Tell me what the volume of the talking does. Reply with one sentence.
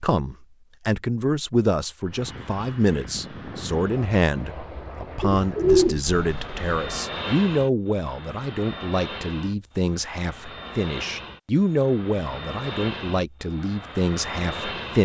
The volume of the talking stays about the same.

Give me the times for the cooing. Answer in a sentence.
You can hear the cooing from 5.2 to 6.8 s.